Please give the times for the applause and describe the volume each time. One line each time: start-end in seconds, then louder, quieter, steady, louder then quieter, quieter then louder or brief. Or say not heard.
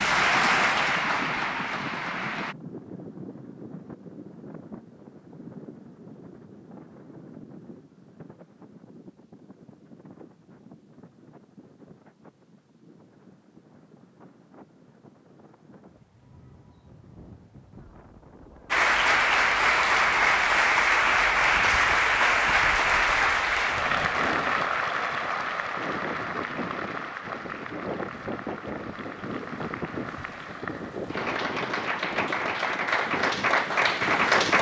0.0-2.5 brief
18.7-34.5 quieter then louder.